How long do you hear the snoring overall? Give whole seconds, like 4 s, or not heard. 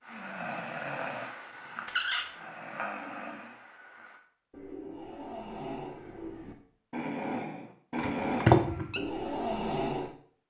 10 s.